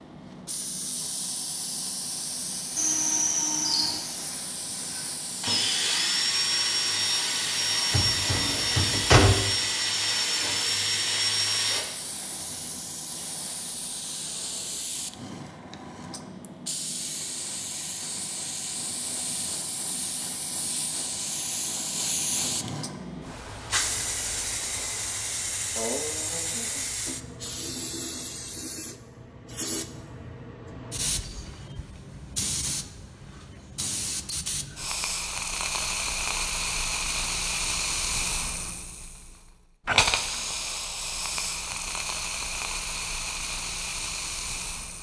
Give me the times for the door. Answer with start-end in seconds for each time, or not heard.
7.9-9.4.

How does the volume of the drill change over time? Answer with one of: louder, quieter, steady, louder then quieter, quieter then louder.
steady.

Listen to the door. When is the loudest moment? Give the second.
9 s.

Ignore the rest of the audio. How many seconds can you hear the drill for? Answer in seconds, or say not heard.
9 s.